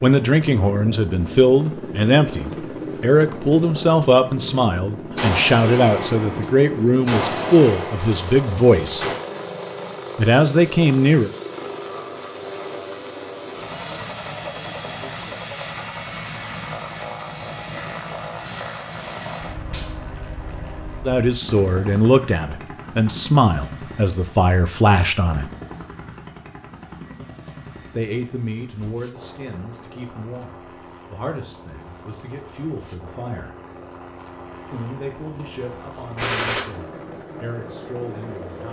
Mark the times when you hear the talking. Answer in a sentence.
The talking can be heard from 0.0 to 9.1 s, from 10.2 to 11.3 s, from 21.1 to 25.5 s, from 27.9 to 33.5 s and from 34.7 to 38.6 s.